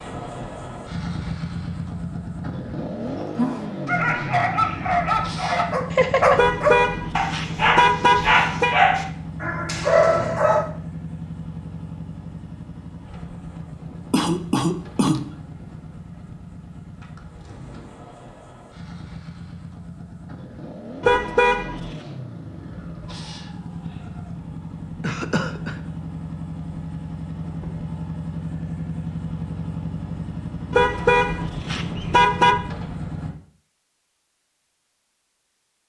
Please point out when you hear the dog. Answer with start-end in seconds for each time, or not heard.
3.0-10.7.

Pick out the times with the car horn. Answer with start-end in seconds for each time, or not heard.
6.3-8.8, 21.0-21.9, 30.7-32.6.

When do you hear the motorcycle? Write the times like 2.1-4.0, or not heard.
0.0-33.3.